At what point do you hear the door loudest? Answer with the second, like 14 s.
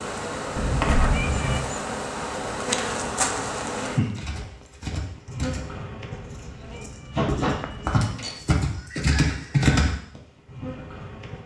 1 s.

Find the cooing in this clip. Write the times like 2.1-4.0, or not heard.
not heard.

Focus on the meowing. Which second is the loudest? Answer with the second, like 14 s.
1 s.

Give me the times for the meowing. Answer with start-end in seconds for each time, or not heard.
0.6-1.6, 6.2-8.1.